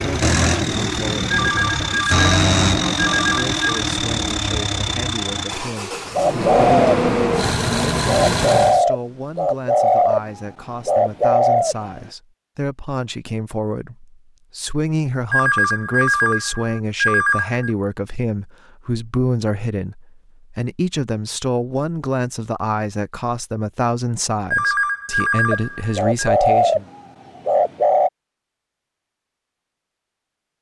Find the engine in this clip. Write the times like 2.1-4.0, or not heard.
0.0-8.8.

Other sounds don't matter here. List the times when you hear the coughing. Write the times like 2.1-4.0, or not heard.
not heard.